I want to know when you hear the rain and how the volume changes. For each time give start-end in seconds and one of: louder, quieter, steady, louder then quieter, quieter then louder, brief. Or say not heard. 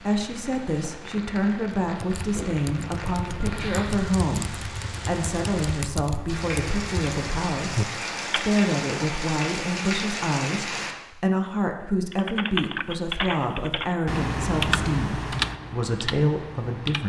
0.0-10.9 louder.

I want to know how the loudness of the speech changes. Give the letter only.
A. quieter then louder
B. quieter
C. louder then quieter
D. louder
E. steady
E.